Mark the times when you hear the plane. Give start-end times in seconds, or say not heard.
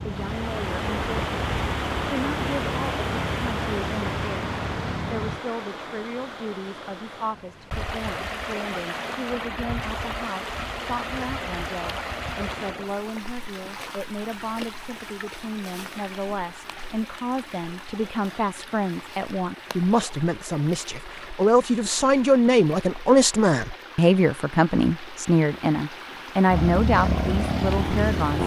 0.0-5.4, 26.4-28.4.